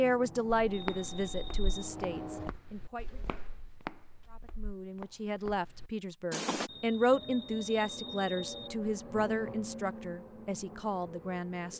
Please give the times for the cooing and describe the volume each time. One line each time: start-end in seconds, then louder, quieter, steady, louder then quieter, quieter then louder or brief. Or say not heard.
not heard.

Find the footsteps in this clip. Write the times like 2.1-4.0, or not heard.
0.7-6.7.